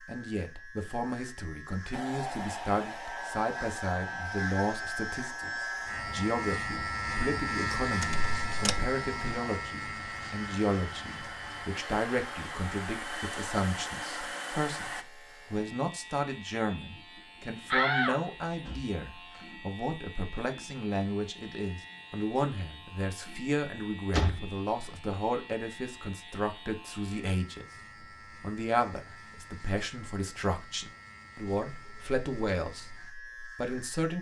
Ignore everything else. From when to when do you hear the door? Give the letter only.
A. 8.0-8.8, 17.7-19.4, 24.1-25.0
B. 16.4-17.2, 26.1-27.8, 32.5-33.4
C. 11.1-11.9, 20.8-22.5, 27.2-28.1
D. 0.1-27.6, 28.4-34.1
A.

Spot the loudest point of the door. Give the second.
18 s.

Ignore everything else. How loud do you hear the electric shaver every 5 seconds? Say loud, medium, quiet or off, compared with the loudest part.
medium, loud, medium, quiet, quiet, quiet, quiet.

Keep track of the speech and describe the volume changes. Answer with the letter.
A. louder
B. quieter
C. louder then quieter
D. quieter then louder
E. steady
E.